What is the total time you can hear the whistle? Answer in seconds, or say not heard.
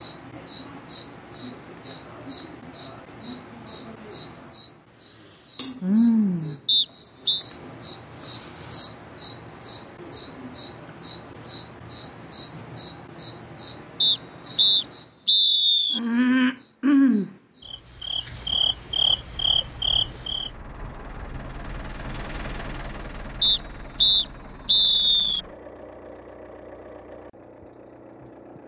5 s.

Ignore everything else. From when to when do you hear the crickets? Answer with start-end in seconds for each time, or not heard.
0.0-20.5.